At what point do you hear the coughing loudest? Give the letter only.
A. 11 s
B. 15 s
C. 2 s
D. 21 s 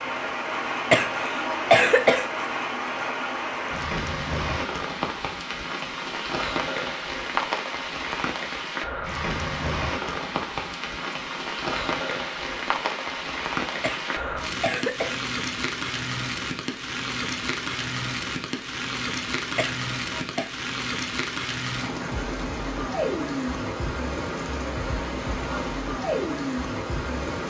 C.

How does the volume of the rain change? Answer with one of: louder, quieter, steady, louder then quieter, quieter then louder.
steady.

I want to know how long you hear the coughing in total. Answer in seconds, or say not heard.
4 s.